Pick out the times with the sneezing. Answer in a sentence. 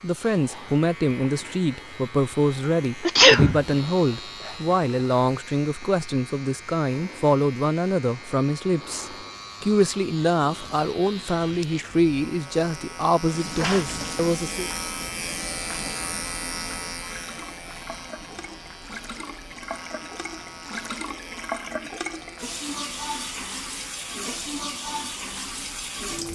The sneezing can be heard from 3.0 to 3.6 s and from 13.6 to 14.0 s.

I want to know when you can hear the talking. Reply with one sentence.
The talking can be heard from 0.0 to 14.7 s.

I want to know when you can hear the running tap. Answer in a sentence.
The running tap can be heard from 13.2 to 26.3 s.